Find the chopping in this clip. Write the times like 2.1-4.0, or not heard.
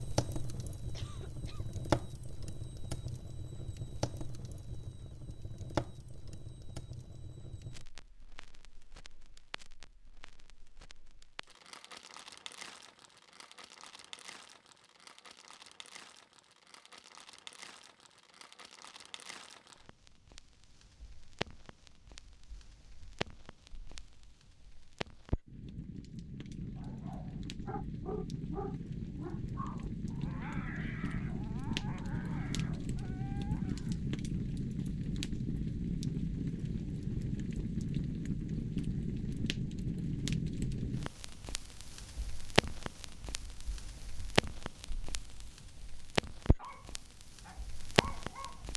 not heard.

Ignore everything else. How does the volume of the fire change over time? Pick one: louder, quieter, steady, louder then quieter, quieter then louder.
quieter then louder.